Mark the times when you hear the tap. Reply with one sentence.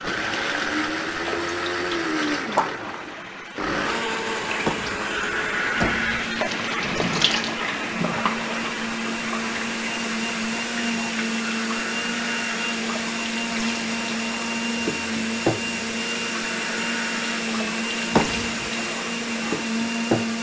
You can hear the tap from 0.0 to 20.3 s.